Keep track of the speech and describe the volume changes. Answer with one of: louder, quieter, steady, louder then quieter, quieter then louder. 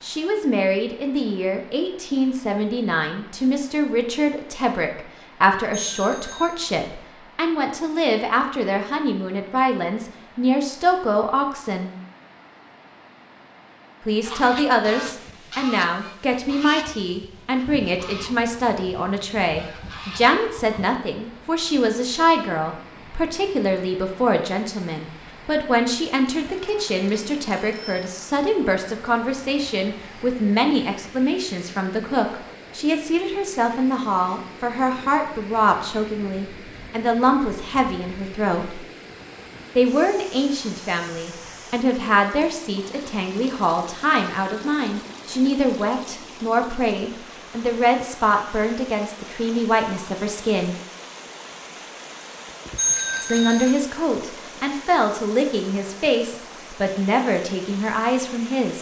steady.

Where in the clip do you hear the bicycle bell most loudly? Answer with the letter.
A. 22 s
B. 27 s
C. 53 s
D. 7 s
C.